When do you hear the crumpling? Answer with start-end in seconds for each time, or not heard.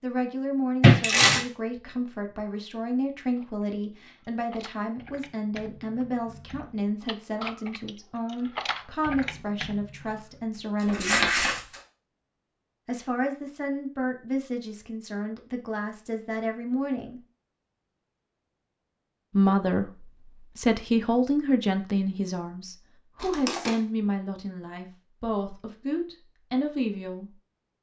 0.8-1.4, 10.8-11.6, 23.2-23.8.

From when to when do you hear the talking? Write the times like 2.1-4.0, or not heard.
0.0-11.2, 12.8-17.2, 19.3-27.4.